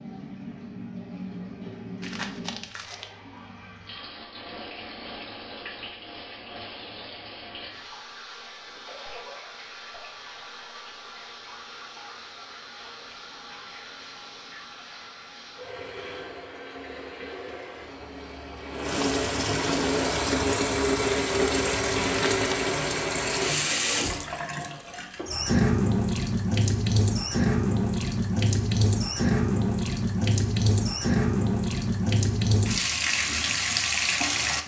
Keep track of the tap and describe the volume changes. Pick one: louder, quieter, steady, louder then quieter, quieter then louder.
louder.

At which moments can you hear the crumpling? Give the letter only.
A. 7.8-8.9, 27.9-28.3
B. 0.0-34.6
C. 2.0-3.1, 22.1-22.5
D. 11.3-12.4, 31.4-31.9
C.